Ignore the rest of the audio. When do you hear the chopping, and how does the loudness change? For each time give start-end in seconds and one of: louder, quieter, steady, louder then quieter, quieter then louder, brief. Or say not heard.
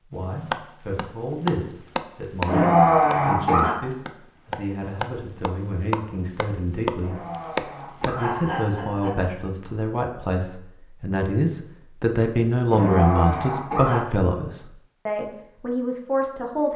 0.5-8.2 quieter then louder.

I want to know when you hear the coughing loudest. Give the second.
3 s.